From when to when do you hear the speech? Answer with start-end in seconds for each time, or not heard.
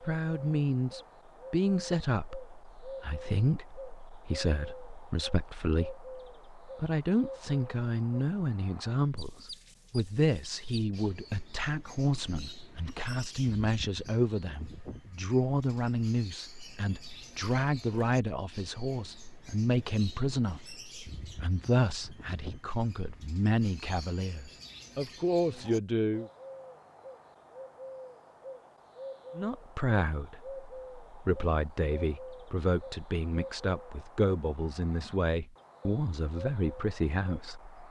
0.0-26.3, 29.4-37.8.